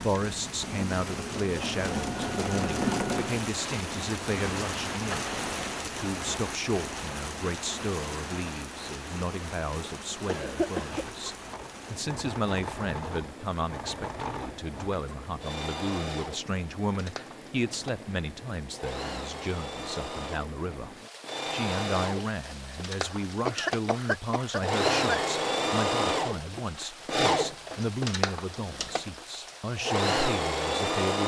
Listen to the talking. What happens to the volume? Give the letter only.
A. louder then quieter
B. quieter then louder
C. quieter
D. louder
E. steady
E.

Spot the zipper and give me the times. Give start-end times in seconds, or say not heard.
not heard.